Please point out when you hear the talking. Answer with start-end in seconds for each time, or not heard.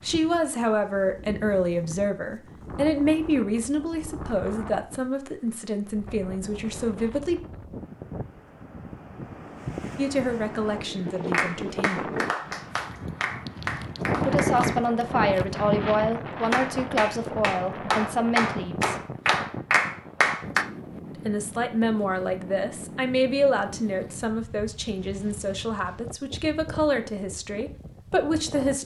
0.0-7.4, 9.9-12.1, 14.2-18.9, 21.2-28.7.